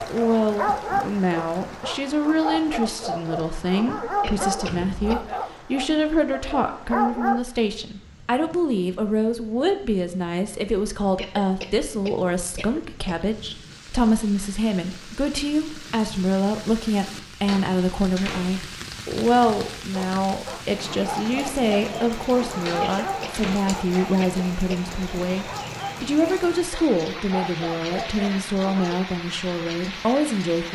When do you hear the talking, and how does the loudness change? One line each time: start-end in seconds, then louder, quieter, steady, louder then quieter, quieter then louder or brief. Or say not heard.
0.0-30.6 steady.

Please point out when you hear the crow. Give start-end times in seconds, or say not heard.
not heard.